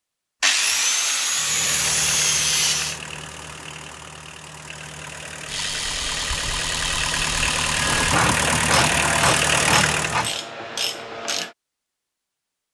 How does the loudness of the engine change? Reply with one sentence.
The volume of the engine goes down, then up.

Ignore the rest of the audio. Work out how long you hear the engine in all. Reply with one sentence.
The engine can be heard for 9 seconds in total.